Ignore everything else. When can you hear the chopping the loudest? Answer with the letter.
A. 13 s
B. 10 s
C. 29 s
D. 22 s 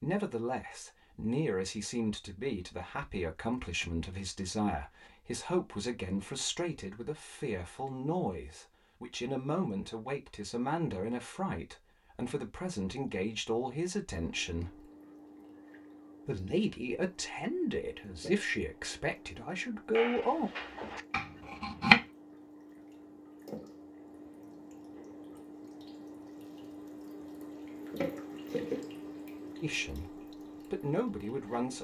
D.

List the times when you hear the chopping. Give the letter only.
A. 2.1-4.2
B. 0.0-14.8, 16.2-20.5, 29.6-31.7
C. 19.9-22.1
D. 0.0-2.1
C.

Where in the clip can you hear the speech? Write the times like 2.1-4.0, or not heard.
0.0-14.8, 16.2-20.5, 29.6-31.7.